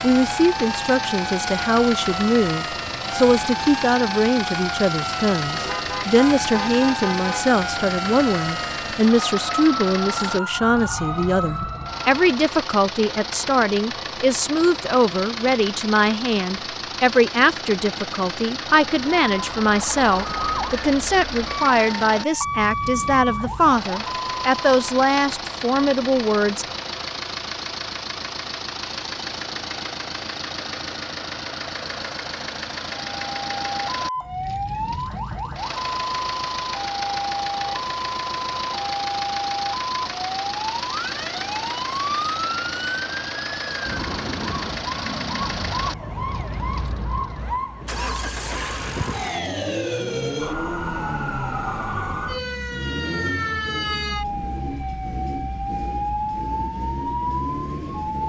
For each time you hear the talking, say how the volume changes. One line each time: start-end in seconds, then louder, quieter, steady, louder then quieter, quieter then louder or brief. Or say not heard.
0.0-26.6 steady.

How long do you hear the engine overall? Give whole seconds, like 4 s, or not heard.
58 s.